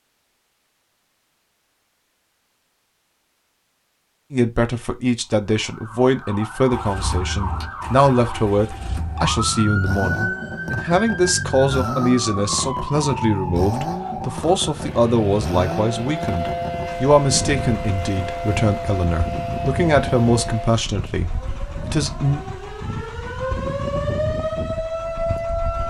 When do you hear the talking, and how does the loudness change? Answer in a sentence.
The talking can be heard from 4.3 to 22.4 s, at a steady volume.